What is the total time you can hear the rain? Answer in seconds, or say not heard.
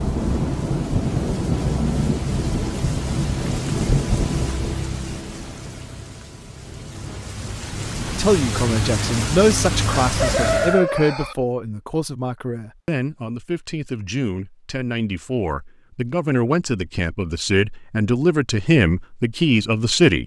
11 s.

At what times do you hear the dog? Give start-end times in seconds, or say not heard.
not heard.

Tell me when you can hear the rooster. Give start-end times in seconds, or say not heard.
10.0-11.3.